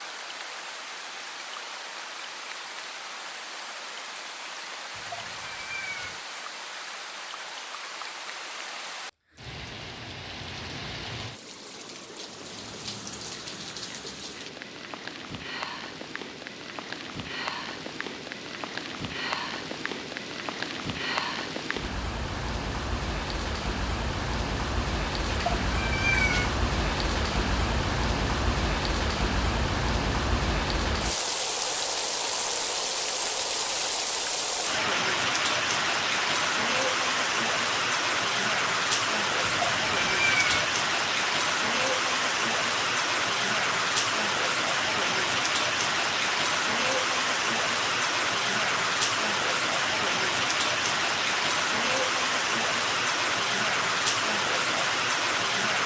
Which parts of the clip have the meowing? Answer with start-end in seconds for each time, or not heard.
4.9-6.2, 25.2-26.6, 39.4-40.7.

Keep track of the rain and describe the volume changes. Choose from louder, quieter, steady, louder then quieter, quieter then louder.
louder.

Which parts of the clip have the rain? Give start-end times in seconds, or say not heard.
0.0-55.8.